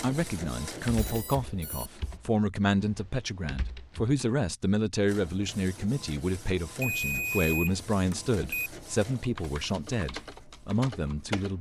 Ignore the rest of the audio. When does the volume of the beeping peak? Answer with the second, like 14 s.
7 s.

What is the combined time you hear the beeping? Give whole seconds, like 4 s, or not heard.
3 s.